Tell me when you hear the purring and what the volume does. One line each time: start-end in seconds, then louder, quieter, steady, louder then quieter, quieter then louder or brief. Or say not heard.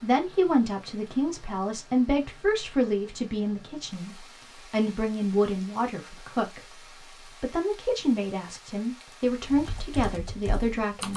not heard.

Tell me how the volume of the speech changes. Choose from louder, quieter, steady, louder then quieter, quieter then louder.
steady.